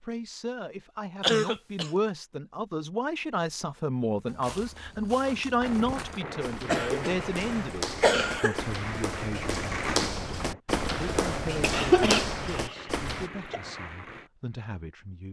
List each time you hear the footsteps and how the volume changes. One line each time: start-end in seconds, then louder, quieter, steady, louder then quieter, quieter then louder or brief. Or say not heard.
4.2-13.3 louder.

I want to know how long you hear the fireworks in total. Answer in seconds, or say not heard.
9 s.